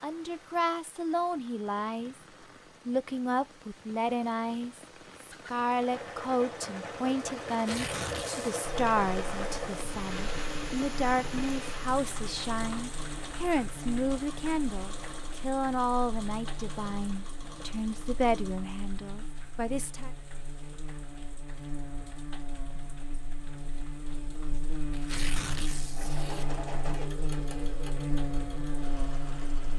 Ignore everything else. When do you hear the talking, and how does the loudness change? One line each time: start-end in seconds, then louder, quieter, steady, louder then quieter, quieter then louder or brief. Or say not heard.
0.0-2.1 brief
2.9-20.1 steady.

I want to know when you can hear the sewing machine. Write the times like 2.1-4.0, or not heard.
5.7-18.6, 25.8-29.7.